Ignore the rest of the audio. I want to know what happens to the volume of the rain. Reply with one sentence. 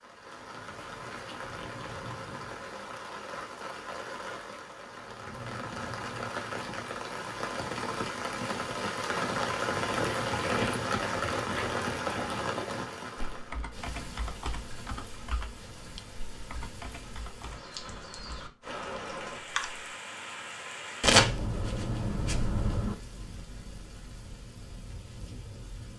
The volume of the rain goes up, then down.